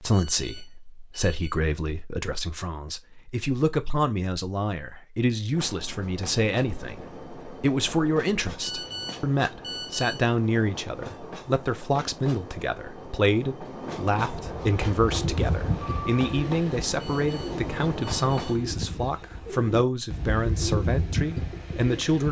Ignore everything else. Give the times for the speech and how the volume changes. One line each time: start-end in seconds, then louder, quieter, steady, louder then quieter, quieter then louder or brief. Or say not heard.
0.0-22.2 steady.